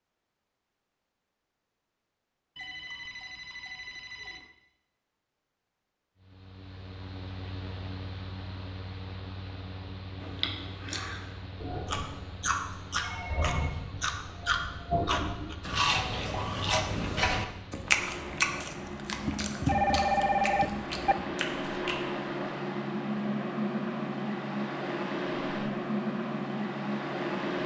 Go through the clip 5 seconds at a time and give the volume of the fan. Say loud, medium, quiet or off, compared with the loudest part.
off, quiet, quiet, medium, loud, loud.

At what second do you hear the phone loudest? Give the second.
20 s.